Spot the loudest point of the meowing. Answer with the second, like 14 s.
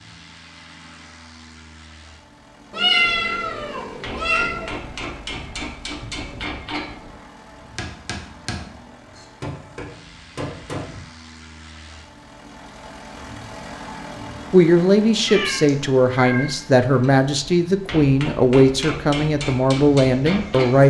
3 s.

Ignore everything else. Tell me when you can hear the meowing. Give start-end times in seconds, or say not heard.
2.7-4.8, 15.2-16.6.